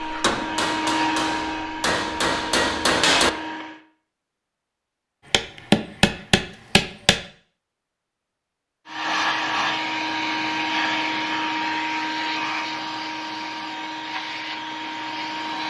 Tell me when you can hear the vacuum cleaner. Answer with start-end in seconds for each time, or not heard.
0.0-3.8, 8.8-15.6.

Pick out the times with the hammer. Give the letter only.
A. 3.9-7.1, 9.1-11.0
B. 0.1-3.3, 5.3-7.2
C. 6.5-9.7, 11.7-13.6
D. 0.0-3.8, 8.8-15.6
B.